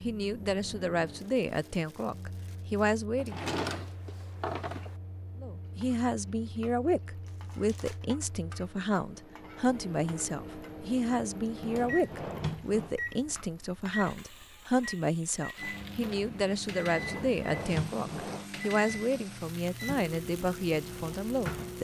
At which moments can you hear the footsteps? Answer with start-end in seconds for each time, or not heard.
not heard.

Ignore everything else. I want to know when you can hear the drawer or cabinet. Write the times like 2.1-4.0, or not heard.
3.1-5.0, 11.6-12.9, 16.9-18.4.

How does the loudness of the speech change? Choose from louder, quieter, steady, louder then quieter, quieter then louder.
steady.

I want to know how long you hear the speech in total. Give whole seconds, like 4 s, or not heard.
20 s.